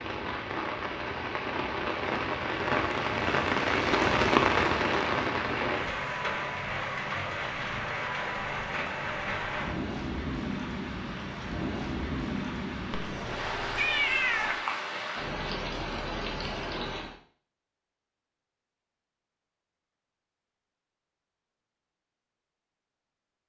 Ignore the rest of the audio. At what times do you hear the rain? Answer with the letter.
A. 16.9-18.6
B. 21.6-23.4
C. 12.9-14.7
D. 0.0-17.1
D.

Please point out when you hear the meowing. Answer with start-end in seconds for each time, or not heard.
12.9-14.7.